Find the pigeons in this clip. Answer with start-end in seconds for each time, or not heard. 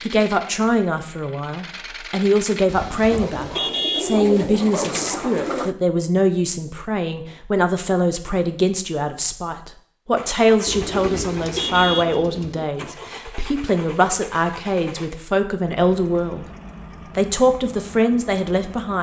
3.1-5.8, 10.7-12.7.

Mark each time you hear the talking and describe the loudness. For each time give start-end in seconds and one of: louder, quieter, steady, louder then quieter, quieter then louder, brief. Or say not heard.
0.0-16.5 steady
17.1-18.9 brief.